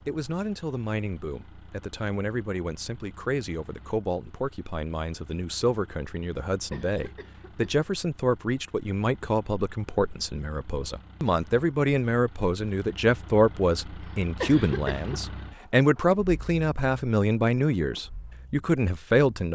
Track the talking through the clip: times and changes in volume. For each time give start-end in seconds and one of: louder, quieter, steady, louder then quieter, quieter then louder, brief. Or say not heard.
0.1-19.5 louder.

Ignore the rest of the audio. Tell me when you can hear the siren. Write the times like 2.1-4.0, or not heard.
not heard.